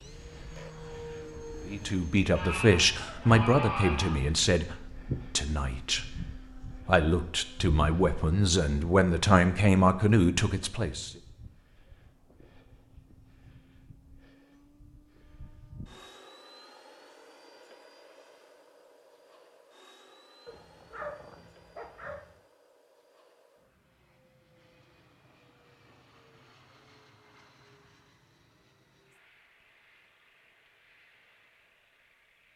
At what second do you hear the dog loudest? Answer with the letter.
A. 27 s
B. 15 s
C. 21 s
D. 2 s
C.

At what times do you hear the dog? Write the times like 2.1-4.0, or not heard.
20.4-22.4.